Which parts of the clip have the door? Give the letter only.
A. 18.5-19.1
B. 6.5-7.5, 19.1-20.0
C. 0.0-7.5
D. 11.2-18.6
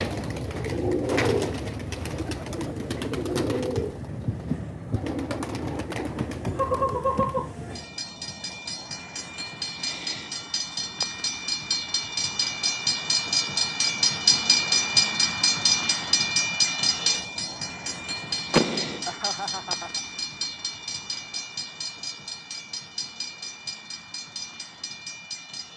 A.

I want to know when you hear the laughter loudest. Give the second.
7 s.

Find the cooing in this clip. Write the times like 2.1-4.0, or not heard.
0.0-7.5.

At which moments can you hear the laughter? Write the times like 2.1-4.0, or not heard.
6.5-7.5, 19.1-20.0.